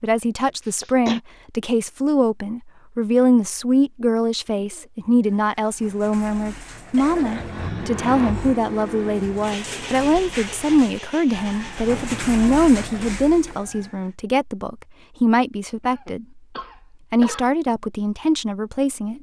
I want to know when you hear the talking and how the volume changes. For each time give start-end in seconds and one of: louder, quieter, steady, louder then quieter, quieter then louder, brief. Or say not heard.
0.0-16.4 steady
17.1-19.1 brief.